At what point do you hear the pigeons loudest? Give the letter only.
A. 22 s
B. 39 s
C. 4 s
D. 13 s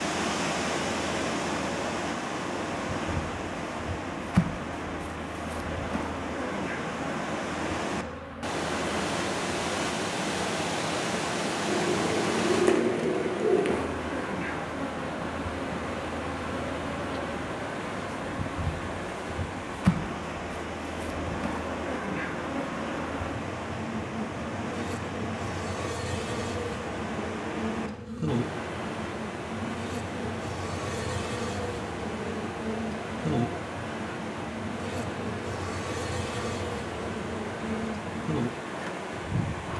D.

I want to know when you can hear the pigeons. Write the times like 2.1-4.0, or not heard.
11.7-13.9.